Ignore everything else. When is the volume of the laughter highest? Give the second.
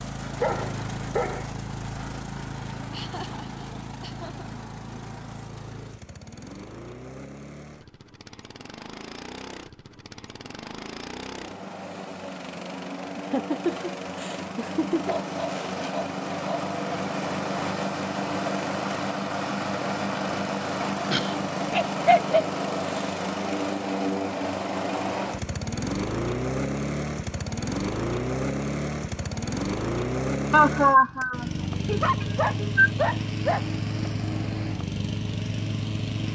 31 s.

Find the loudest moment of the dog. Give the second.
22 s.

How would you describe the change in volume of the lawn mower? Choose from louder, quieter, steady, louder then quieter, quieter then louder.
louder.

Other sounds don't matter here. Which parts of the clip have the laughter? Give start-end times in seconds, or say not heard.
2.9-4.5, 13.2-15.2, 30.5-32.9.